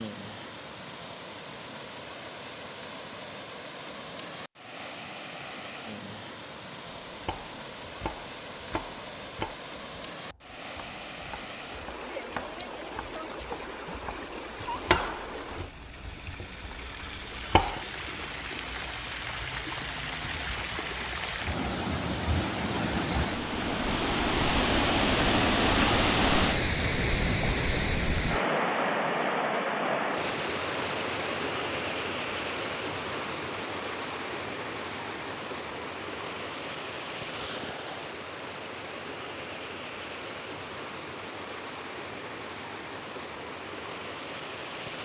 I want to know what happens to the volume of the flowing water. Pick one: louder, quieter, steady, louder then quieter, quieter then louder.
louder then quieter.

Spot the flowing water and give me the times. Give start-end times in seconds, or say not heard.
0.0-45.0.